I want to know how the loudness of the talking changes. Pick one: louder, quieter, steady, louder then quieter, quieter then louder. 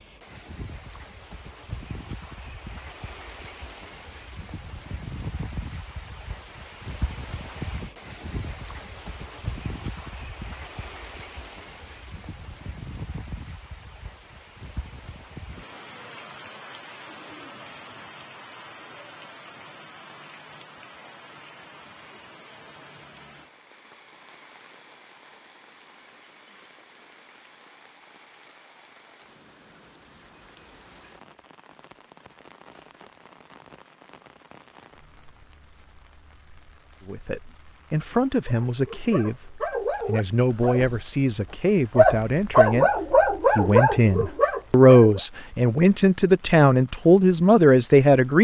louder.